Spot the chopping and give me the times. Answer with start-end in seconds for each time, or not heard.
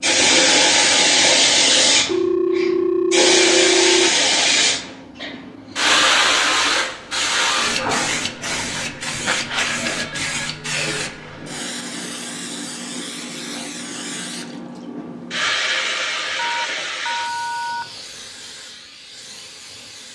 not heard.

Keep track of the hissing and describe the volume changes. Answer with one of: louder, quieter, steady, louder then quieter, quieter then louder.
quieter.